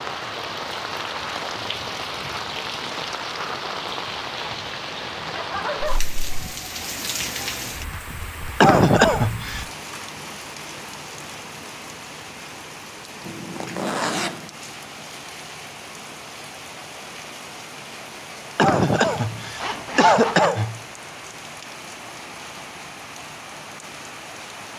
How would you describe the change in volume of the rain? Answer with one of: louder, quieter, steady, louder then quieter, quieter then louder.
quieter.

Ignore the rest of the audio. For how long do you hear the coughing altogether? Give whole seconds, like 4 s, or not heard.
3 s.